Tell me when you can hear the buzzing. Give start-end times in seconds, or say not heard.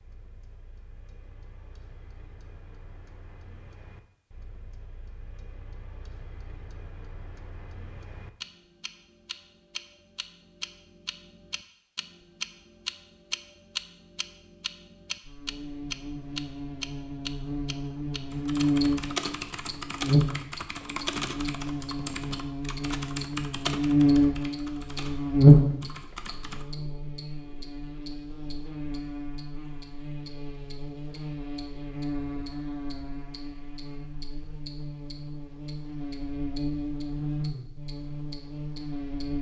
15.2-39.3.